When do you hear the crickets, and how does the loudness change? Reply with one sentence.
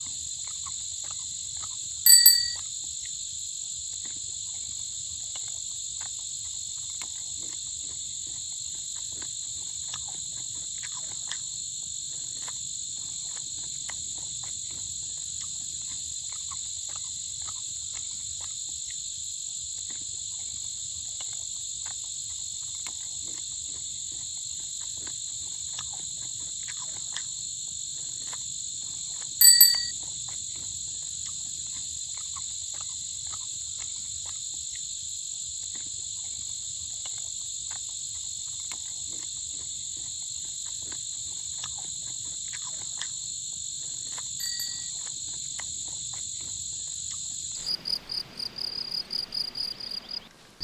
The crickets can be heard from 0.0 to 50.5 s, at a steady volume.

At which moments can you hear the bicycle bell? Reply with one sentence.
You can hear the bicycle bell from 2.0 to 2.5 s, from 29.4 to 29.9 s and from 44.4 to 44.9 s.